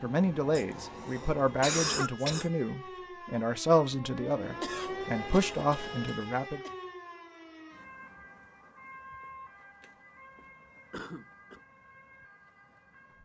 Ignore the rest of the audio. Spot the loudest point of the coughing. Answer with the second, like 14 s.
2 s.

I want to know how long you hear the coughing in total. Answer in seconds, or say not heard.
5 s.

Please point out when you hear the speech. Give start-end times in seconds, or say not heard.
0.0-6.6.